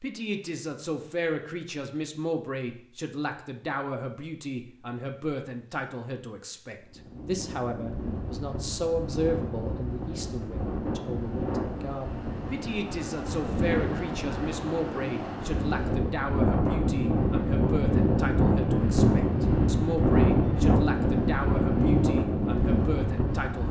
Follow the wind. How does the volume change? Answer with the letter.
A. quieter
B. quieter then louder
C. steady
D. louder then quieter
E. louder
E.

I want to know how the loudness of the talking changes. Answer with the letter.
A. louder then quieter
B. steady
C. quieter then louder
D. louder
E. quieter
B.